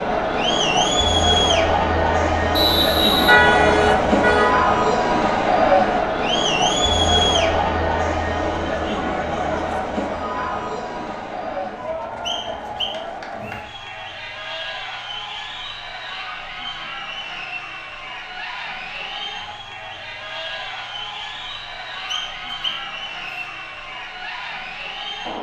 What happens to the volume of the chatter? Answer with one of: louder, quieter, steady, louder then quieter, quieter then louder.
quieter.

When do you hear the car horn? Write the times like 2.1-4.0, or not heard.
3.2-4.5.